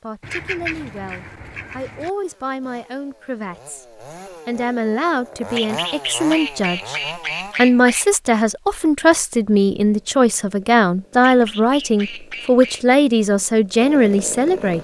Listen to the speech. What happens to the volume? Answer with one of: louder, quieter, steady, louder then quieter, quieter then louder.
louder.